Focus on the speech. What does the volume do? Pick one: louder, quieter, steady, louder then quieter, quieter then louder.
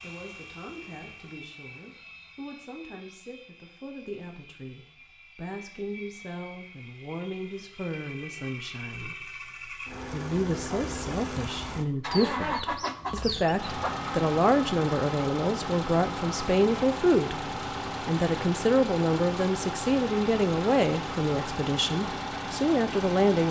louder.